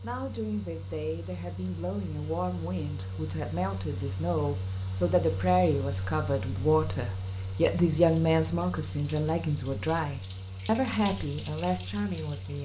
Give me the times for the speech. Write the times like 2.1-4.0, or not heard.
0.0-12.5.